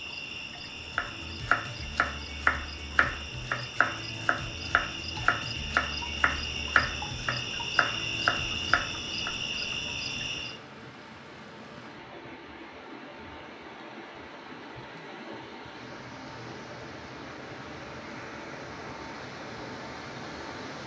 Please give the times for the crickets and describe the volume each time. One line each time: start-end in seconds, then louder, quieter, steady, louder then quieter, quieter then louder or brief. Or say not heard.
0.0-10.6 louder.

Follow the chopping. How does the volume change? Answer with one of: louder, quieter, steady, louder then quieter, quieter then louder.
steady.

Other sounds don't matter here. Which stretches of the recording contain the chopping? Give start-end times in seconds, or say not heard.
0.9-9.3.